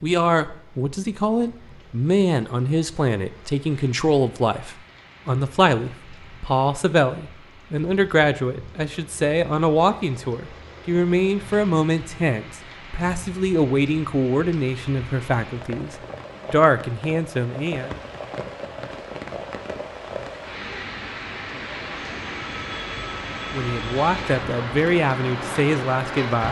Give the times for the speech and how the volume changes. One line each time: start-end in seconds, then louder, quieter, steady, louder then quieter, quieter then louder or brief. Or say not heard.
0.0-17.9 steady
23.5-26.4 brief.